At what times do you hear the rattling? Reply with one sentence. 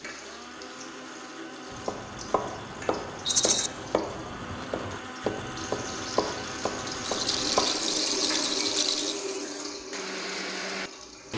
The rattling can be heard from 3.2 to 3.7 s and from 7.0 to 9.2 s.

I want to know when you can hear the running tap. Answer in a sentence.
The running tap can be heard from 0.0 to 11.3 s.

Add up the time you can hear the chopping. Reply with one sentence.
The chopping can be heard for 6 seconds in total.